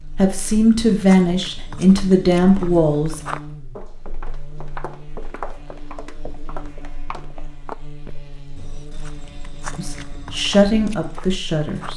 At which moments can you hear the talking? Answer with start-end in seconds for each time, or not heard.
0.1-3.2, 9.8-11.9.